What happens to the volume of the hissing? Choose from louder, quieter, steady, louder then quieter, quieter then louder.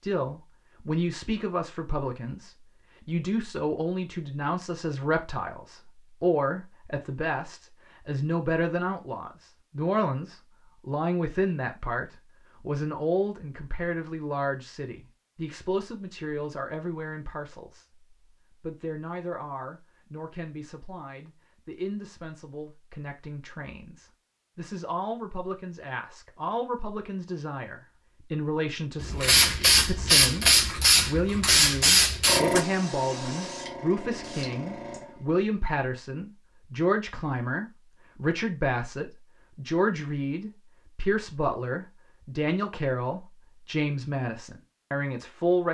quieter.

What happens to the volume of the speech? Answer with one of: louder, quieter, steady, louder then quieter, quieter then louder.
quieter then louder.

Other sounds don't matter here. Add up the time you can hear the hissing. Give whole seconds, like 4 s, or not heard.
6 s.